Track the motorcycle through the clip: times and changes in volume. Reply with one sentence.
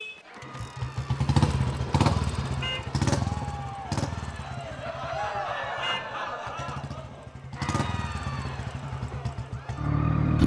You can hear the motorcycle from 0.0 to 10.4 s, getting quieter then louder.